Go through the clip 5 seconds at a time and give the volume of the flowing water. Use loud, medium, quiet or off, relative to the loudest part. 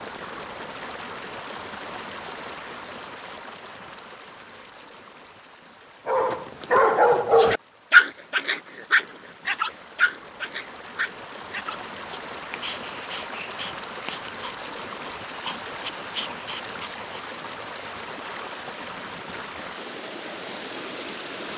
loud, quiet, loud, loud, loud.